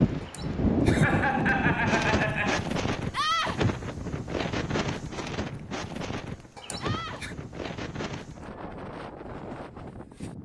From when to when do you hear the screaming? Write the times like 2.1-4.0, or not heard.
3.1-3.6, 6.8-7.2.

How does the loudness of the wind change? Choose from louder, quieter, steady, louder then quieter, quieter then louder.
quieter.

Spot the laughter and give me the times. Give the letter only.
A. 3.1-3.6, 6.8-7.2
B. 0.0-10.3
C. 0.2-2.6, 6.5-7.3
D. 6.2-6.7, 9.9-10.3
C.